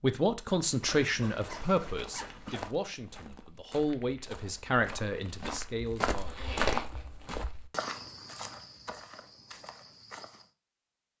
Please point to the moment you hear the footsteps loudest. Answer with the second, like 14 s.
7 s.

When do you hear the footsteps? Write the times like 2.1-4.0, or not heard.
0.7-10.5.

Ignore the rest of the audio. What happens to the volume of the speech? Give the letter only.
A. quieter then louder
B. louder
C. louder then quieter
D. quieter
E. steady
A.